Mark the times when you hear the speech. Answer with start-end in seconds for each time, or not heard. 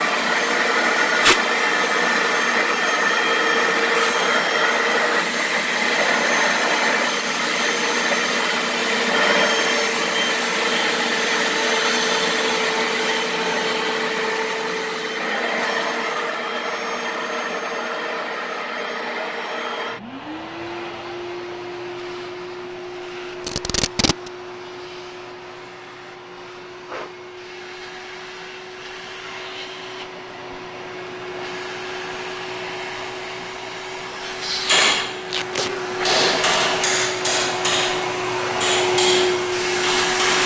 not heard.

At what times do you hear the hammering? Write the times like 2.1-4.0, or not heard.
34.6-40.4.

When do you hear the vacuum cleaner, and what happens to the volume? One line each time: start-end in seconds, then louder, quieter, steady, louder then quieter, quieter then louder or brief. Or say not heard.
0.0-40.4 quieter then louder.